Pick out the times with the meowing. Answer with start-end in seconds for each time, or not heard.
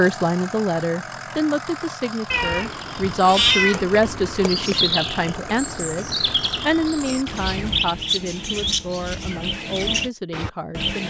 2.3-3.8.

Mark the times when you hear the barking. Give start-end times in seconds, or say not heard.
not heard.